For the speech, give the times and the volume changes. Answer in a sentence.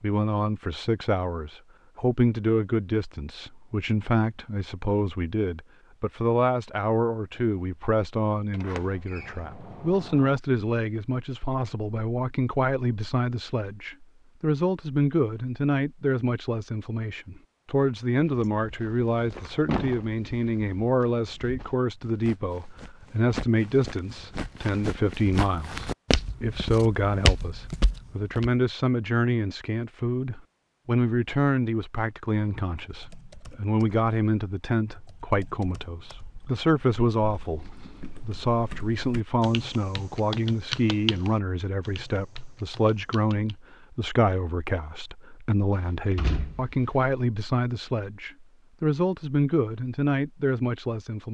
You can hear the speech from 0.0 to 51.2 s, at a steady volume.